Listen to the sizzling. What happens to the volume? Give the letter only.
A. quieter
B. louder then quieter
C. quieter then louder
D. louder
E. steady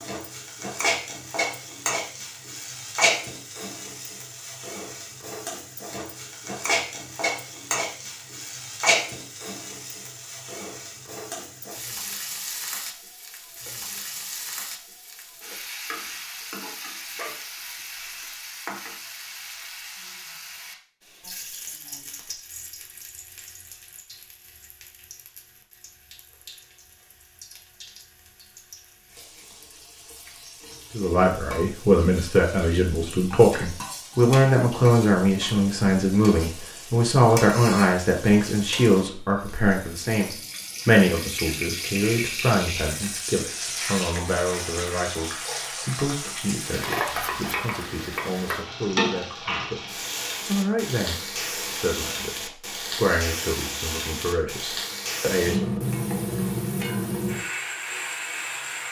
C.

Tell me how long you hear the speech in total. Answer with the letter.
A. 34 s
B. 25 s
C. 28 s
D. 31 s
B.